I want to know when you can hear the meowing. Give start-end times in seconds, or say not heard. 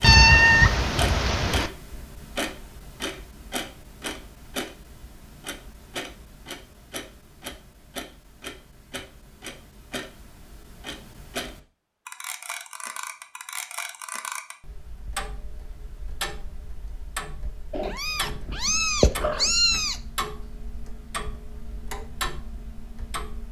0.0-1.7, 17.7-19.9.